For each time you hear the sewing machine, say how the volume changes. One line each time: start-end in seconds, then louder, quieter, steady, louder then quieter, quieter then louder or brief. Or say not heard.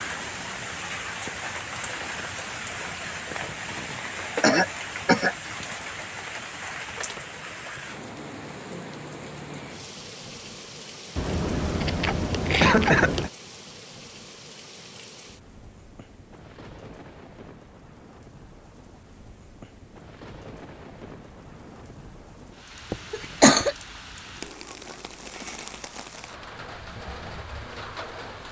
not heard.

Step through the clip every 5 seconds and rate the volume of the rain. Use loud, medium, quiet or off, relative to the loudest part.
loud, loud, medium, quiet, medium, medium.